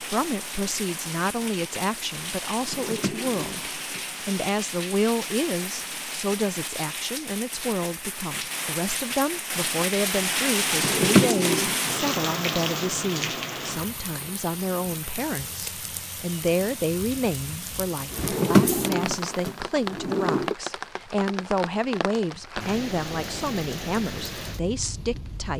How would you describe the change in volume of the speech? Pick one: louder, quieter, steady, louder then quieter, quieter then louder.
steady.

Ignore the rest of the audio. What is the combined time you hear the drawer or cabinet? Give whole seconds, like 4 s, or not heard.
5 s.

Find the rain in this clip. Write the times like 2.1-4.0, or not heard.
0.0-25.5.